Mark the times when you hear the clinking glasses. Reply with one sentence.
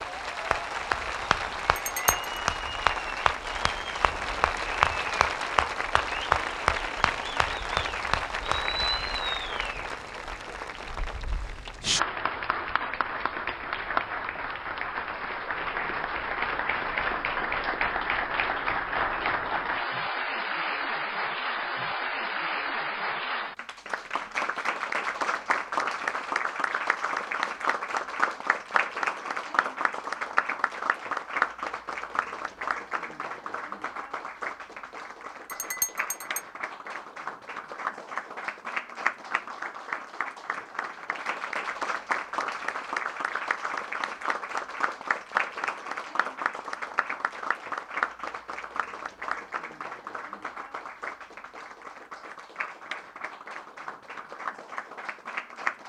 The clinking glasses can be heard from 1.8 to 2.2 s and from 35.5 to 36.4 s.